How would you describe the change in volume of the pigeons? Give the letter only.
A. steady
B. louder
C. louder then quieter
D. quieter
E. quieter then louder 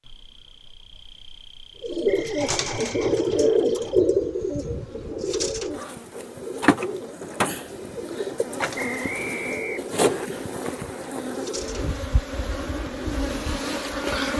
D.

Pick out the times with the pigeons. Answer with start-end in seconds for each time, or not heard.
1.8-13.6.